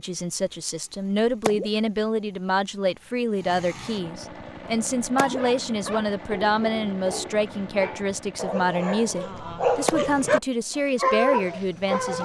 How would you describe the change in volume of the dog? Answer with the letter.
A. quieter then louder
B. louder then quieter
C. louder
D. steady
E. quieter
C.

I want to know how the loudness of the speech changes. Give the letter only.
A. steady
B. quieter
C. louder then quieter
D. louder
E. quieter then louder
A.